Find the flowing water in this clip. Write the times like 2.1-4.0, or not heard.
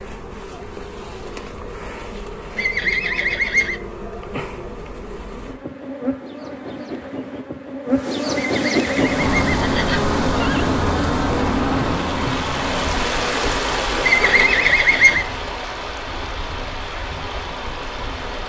8.9-18.4.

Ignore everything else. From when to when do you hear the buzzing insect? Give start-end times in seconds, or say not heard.
0.0-14.8.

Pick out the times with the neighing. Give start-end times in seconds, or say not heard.
2.5-3.8, 8.3-10.7, 14.0-15.2.